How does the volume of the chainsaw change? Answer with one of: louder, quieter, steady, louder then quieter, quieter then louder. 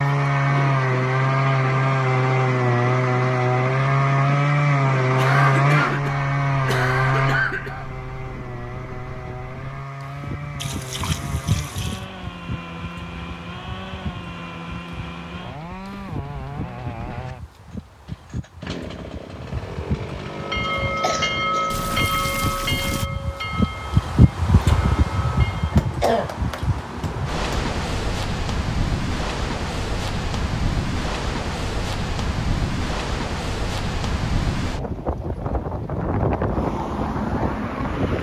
quieter.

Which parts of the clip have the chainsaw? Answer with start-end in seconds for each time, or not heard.
0.0-22.1.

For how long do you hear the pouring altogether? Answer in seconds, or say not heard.
3 s.